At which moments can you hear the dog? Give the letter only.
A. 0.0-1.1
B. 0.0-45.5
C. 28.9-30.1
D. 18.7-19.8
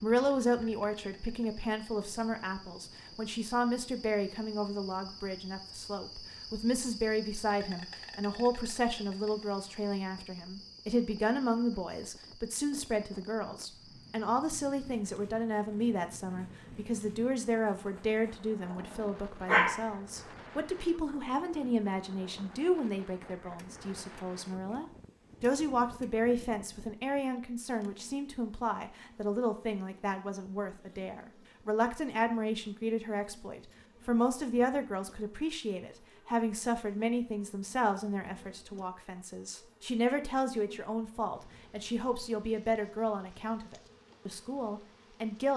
D.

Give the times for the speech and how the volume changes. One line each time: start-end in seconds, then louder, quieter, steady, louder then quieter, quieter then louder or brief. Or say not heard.
0.0-45.5 steady.